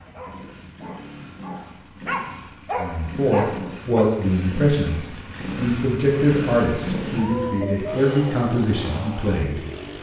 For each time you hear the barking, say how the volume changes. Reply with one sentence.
You can hear the barking from 0.0 to 4.0 s, getting louder.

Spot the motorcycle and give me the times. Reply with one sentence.
The motorcycle can be heard from 0.0 to 9.9 s.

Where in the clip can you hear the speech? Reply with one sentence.
You can hear the speech from 2.8 to 9.6 s.